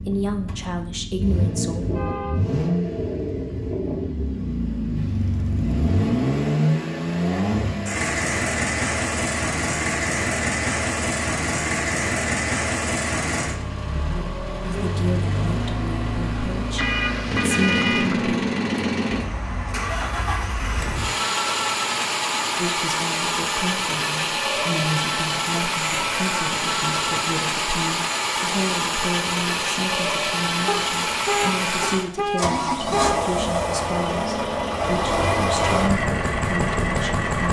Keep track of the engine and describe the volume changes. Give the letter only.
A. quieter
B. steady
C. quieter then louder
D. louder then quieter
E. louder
B.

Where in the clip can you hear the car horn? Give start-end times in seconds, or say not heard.
1.8-2.4, 16.8-18.2, 30.6-33.2.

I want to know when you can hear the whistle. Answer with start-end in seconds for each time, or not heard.
not heard.